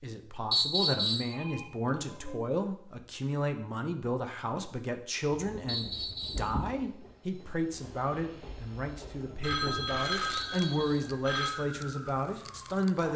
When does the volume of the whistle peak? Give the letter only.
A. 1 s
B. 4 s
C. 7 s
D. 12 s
A.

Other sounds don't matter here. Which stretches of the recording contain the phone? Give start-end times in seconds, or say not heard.
1.3-2.4, 9.4-11.5.